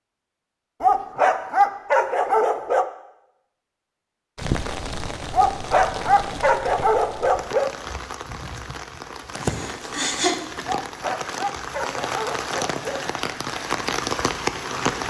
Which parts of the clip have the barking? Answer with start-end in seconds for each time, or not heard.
0.8-2.9, 5.3-7.7, 10.6-13.1.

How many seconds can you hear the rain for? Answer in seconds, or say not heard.
11 s.